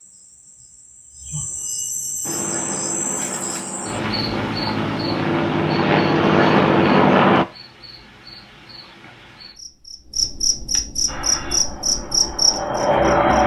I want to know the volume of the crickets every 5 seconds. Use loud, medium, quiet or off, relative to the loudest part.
medium, quiet, loud.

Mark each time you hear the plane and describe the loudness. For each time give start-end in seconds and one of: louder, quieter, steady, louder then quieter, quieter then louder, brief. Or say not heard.
2.2-7.5 louder
11.1-13.4 brief.